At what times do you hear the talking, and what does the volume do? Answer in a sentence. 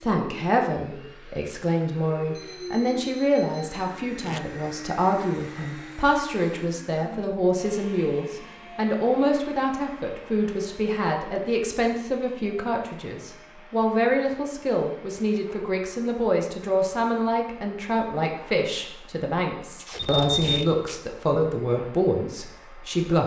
You can hear the talking from 0.0 to 23.2 s, at a steady volume.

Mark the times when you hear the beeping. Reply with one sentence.
You can hear the beeping from 2.4 to 4.0 s and from 19.9 to 20.6 s.